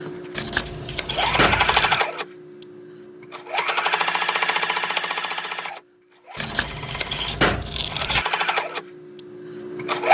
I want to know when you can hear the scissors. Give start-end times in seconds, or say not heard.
0.3-2.0, 6.3-8.2.